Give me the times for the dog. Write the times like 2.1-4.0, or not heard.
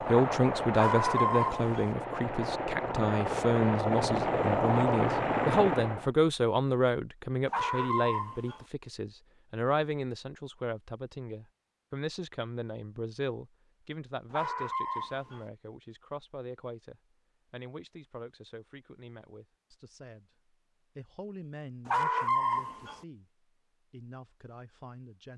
0.8-1.9, 7.5-8.7, 14.3-15.4, 21.9-23.0.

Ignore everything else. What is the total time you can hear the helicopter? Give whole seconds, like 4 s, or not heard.
6 s.